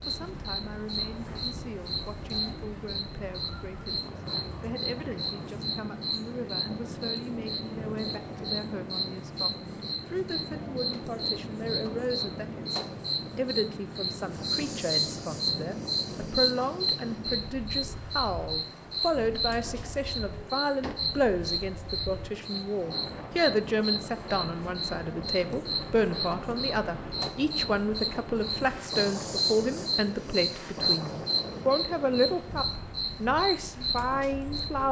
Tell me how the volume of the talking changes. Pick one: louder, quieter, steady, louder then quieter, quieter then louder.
louder.